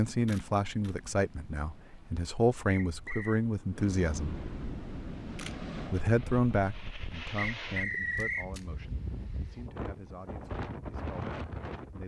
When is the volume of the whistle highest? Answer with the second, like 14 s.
8 s.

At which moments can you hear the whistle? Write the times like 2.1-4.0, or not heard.
2.6-3.4, 7.3-8.5.